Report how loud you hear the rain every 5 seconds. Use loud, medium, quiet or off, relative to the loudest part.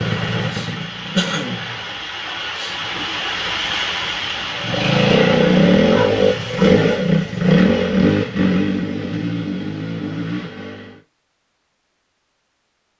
loud, loud, off.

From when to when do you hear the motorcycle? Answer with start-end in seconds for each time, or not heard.
0.0-2.0, 4.5-11.0.